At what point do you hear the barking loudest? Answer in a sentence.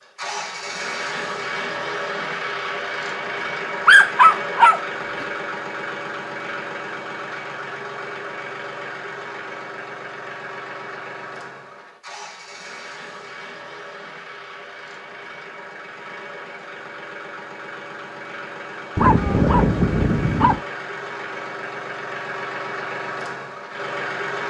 The loudest moment of the barking is at 4 seconds.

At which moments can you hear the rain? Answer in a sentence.
You can't hear the rain here.